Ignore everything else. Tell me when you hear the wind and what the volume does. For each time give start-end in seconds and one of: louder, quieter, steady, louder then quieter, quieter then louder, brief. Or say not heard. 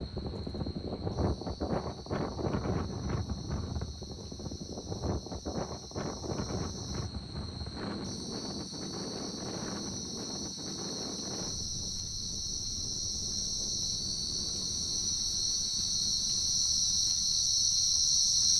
0.0-18.5 quieter.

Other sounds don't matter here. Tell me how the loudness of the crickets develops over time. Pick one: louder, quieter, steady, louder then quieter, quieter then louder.
louder.